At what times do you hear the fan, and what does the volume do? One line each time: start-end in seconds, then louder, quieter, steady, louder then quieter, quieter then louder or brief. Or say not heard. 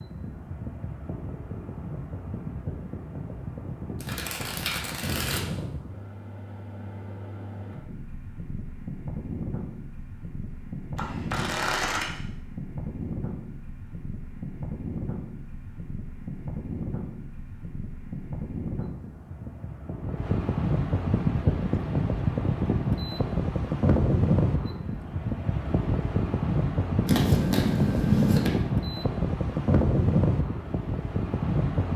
0.0-31.9 louder.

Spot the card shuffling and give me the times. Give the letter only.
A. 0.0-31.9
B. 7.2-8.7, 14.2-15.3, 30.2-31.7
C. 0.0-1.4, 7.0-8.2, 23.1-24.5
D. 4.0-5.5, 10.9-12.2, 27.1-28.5
D.